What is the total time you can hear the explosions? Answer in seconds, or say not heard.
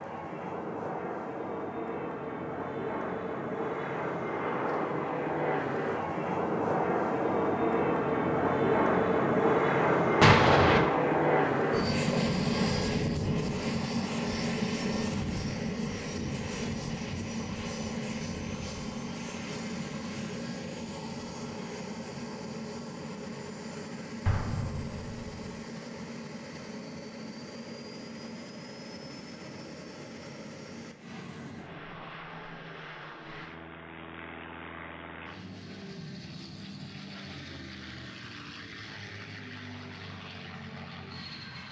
2 s.